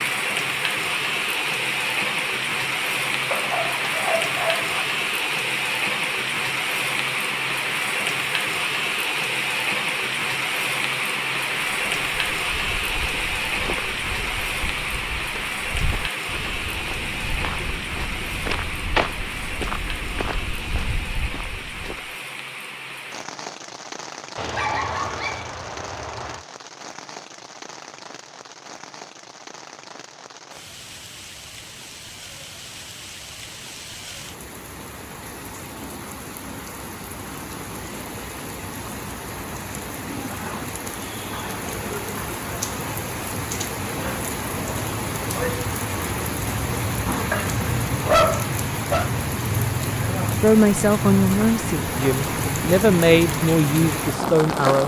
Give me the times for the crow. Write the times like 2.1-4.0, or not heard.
not heard.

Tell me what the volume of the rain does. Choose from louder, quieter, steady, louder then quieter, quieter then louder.
quieter then louder.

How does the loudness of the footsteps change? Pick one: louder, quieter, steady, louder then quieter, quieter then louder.
louder then quieter.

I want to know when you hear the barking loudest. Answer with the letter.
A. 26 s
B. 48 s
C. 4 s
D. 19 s
B.